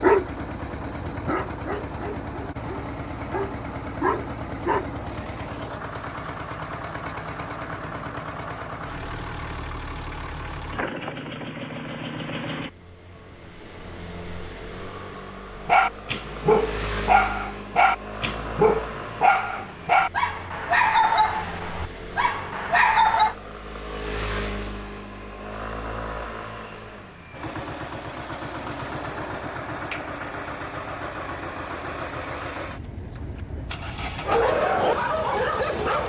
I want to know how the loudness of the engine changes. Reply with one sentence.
The volume of the engine stays about the same.